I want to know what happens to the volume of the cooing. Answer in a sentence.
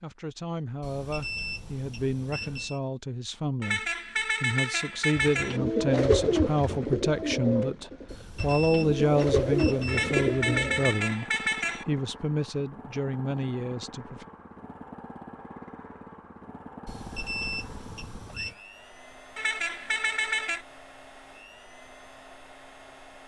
The volume of the cooing goes down, then up.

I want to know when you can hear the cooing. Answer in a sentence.
You can hear the cooing from 5.2 to 10.8 s.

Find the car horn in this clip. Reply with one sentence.
You can hear the car horn from 3.6 to 5.6 s, from 9.8 to 11.8 s and from 19.4 to 20.6 s.